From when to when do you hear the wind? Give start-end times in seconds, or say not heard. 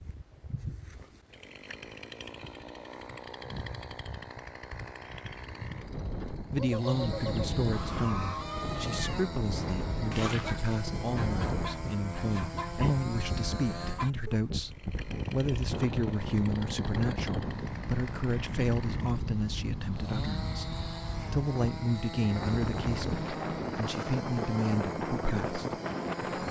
5.7-26.4.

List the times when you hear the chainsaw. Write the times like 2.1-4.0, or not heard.
0.0-26.4.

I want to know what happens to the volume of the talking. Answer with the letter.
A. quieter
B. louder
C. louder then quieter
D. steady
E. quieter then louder
D.